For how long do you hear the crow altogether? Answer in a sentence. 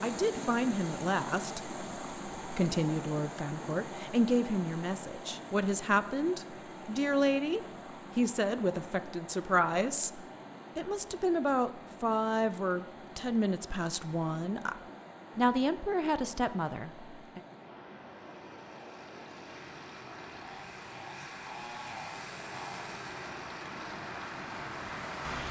The crow can't be heard in this clip.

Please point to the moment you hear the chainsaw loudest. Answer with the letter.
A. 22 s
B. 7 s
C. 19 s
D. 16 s
A.